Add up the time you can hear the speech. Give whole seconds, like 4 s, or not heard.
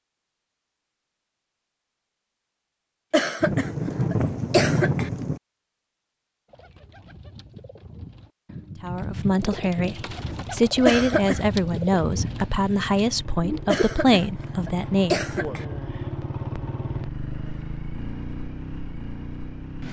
7 s.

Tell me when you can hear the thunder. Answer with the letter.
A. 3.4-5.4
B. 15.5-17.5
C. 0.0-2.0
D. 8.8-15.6
A.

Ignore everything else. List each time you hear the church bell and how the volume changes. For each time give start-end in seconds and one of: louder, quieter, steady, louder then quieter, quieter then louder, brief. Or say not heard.
not heard.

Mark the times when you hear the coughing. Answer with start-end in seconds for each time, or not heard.
3.1-5.1, 10.8-11.4, 13.7-15.7.